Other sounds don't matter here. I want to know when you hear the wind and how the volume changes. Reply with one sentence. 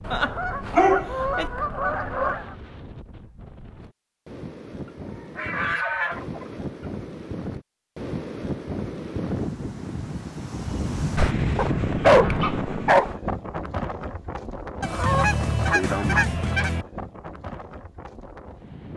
The wind can be heard from 0.0 to 18.9 s, getting louder then quieter.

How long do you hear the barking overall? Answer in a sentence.
You can hear the barking for 3 seconds altogether.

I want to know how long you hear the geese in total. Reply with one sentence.
The geese can be heard for 9 seconds in total.